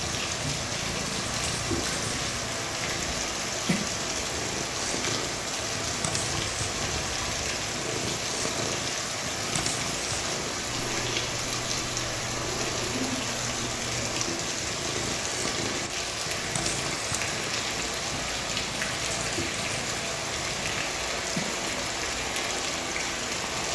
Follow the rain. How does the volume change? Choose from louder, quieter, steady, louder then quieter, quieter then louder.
steady.